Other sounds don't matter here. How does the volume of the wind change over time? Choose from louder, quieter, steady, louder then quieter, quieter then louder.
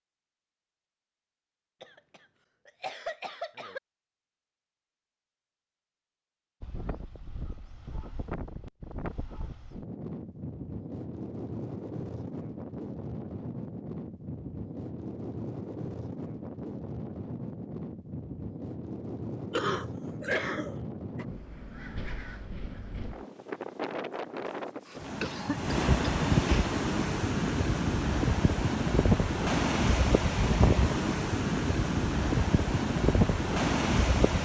louder.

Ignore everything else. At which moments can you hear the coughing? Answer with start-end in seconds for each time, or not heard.
1.8-3.8, 19.5-21.2, 24.9-26.7.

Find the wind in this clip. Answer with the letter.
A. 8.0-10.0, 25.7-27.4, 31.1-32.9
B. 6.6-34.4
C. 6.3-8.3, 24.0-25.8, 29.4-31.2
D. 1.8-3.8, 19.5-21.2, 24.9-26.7
B.